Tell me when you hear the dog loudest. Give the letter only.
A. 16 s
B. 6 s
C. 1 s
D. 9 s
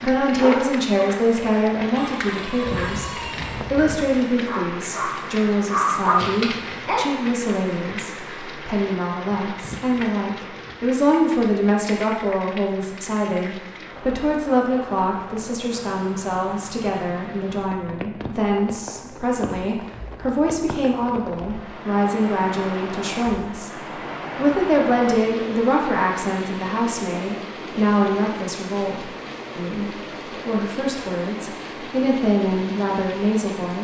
B.